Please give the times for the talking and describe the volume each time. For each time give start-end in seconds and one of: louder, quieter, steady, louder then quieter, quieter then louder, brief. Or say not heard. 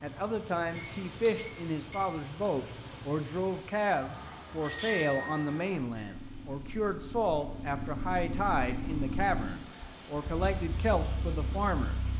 0.0-12.0 steady.